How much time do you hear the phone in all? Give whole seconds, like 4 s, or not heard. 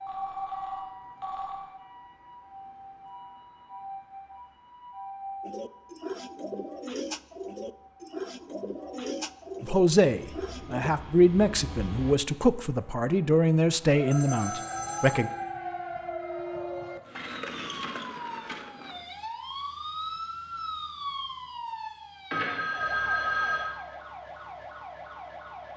4 s.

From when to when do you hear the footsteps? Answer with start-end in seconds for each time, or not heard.
not heard.